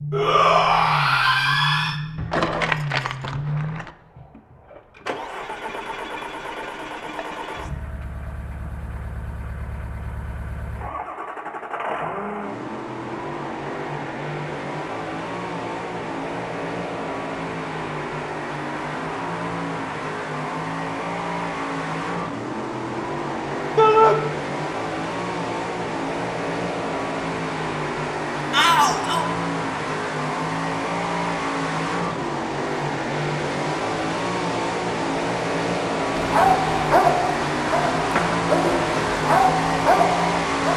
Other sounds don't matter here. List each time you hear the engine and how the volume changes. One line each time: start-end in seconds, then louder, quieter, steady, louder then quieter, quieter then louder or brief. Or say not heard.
0.0-40.7 louder.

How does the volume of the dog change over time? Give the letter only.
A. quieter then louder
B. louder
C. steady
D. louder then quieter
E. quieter
A.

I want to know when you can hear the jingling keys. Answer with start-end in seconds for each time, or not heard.
2.1-3.9.